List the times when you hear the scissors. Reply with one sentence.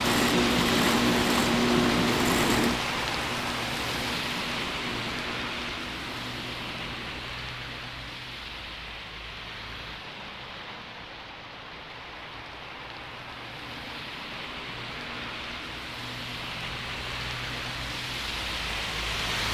You can't hear the scissors here.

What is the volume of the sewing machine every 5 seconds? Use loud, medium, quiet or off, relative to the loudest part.
loud, quiet, off, off.